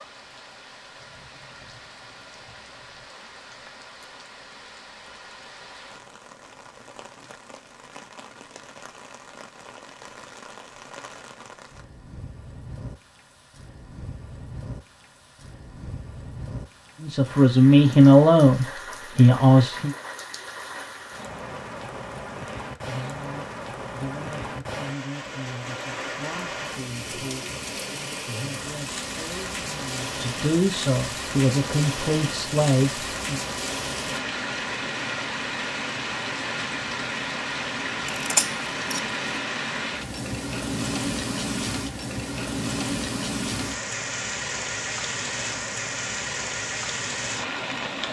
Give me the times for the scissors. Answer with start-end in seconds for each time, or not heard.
38.0-39.2.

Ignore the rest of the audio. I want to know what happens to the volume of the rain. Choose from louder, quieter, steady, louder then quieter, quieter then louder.
louder.